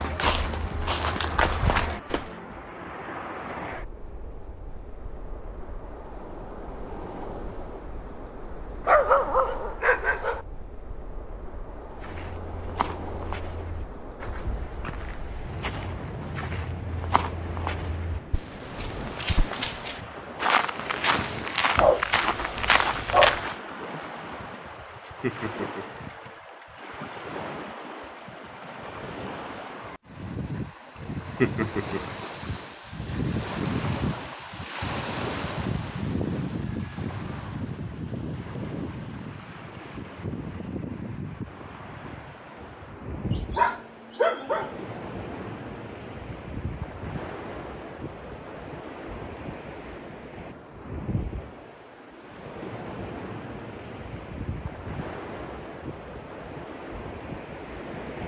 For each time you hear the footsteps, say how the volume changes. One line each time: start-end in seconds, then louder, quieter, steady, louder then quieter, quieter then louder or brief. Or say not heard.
0.0-2.3 brief
11.9-23.6 louder.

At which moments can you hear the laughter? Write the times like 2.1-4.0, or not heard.
24.8-26.4, 30.9-32.0.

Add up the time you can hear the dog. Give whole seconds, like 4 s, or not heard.
5 s.